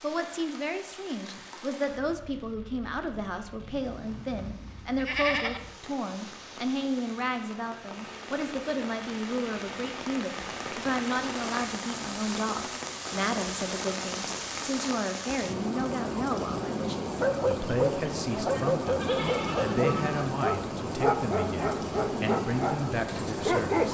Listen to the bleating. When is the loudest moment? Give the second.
5 s.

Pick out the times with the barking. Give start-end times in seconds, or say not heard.
17.1-23.9.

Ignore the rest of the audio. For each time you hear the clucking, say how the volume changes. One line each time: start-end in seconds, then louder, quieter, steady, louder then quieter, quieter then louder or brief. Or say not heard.
not heard.